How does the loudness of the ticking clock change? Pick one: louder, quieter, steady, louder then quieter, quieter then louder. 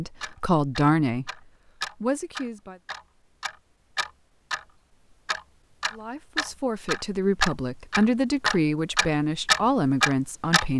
louder.